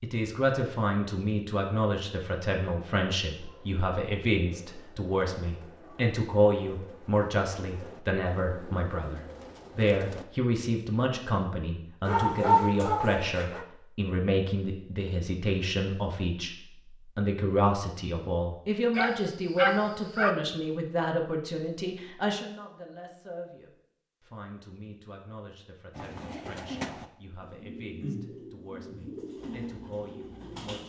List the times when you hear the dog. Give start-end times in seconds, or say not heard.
12.1-13.7, 18.9-20.4.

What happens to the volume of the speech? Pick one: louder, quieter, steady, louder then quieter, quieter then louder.
quieter.